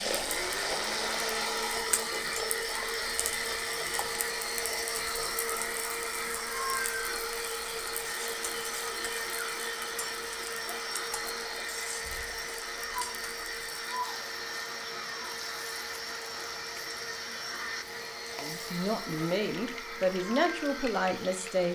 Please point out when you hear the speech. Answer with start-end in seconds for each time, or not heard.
18.4-21.7.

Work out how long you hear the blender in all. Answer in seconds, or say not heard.
22 s.